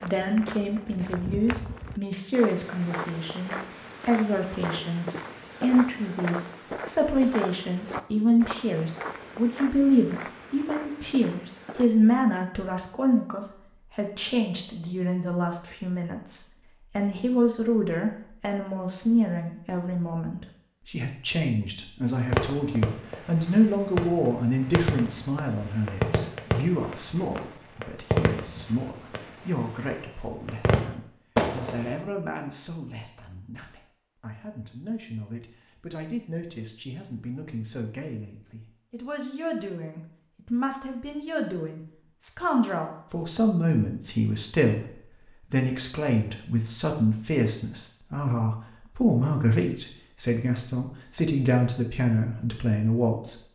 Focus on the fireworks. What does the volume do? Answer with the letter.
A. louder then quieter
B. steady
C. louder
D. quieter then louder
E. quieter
C.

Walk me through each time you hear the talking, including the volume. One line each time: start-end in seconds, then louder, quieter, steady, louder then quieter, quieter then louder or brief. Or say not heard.
0.0-53.4 quieter then louder.